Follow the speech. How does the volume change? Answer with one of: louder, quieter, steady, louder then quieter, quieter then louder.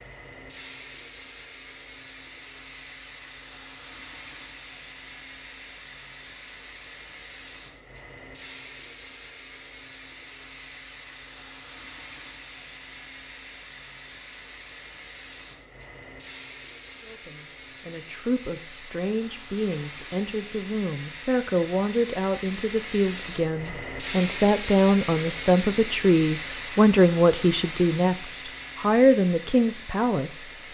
louder.